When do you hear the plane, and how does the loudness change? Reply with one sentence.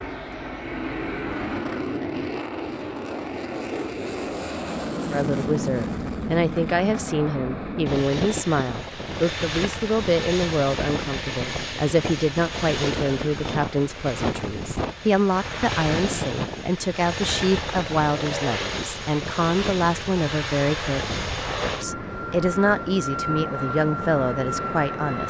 The plane can be heard from 0.0 to 25.2 s, at a steady volume.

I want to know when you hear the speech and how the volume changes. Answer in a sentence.
You can hear the speech from 5.1 to 25.2 s, at a steady volume.